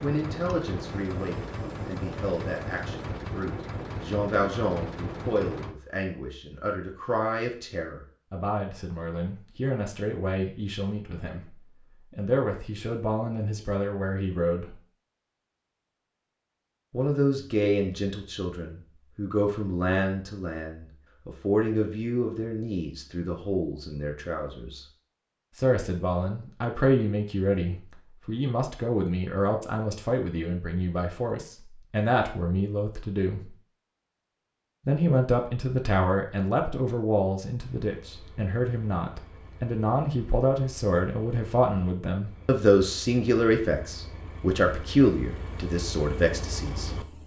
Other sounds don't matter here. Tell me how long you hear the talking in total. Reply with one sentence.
The talking can be heard for 43 seconds in total.